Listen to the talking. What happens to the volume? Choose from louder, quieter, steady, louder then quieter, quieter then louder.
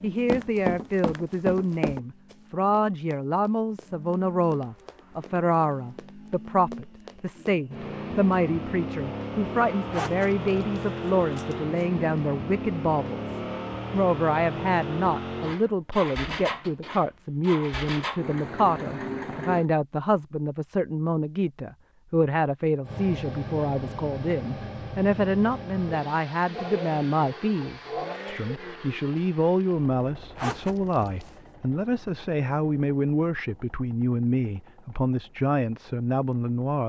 steady.